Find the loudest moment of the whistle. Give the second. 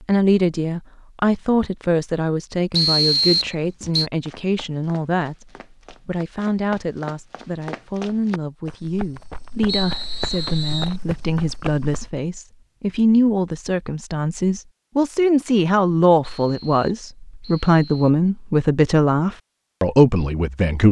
3 s.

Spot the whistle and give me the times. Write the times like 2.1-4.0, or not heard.
2.7-4.1, 9.7-10.9, 16.2-18.1.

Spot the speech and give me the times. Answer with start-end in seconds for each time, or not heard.
0.1-20.8.